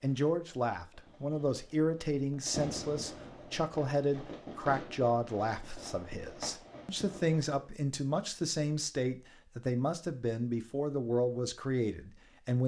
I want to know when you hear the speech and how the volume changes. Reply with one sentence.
You can hear the speech from 0.0 to 12.6 s, at a steady volume.